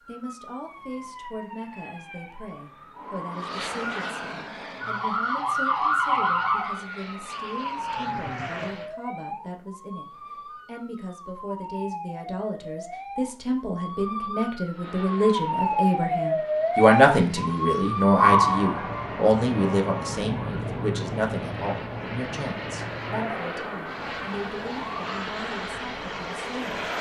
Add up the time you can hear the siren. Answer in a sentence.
You can hear the siren for 27 seconds altogether.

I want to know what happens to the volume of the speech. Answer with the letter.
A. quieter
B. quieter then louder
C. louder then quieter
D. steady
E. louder
C.